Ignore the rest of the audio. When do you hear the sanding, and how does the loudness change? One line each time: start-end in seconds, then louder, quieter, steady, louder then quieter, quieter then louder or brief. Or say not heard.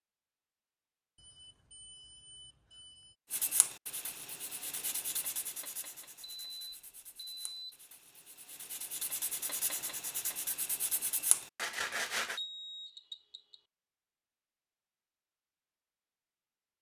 3.3-12.4 quieter then louder.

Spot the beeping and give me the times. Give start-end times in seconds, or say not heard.
1.1-3.1, 6.2-7.8, 12.3-13.6.